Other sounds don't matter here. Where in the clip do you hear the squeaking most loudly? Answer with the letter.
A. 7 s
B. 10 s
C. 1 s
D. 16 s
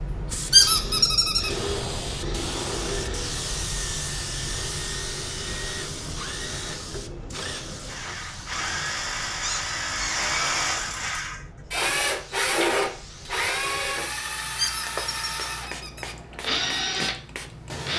C.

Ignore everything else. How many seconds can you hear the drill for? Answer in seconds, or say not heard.
18 s.